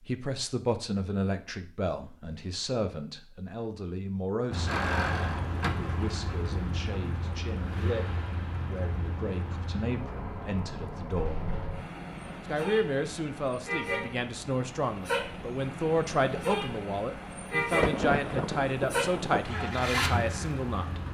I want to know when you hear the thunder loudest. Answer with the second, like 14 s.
18 s.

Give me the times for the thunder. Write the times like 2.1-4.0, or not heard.
17.7-19.4.